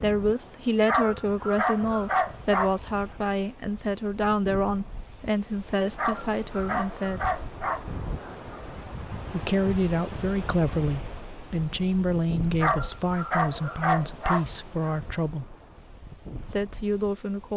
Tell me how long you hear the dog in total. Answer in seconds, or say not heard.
7 s.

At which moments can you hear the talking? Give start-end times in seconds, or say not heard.
0.0-7.2, 9.3-15.6, 16.4-17.5.